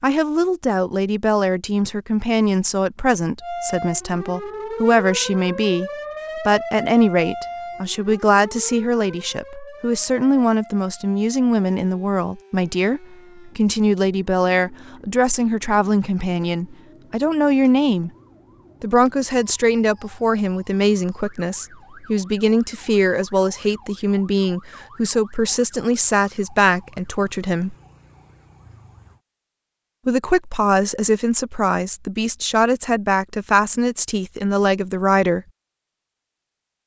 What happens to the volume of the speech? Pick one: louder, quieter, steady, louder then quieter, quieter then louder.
steady.